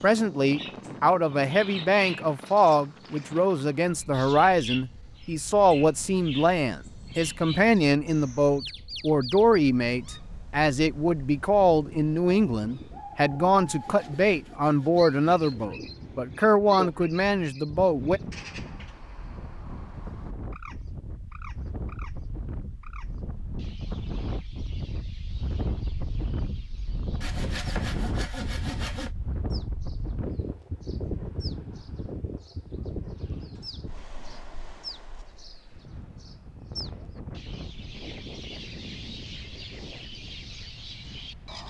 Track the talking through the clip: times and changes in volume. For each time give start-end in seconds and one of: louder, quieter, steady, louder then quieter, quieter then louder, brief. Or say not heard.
0.0-18.2 steady.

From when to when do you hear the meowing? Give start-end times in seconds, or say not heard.
not heard.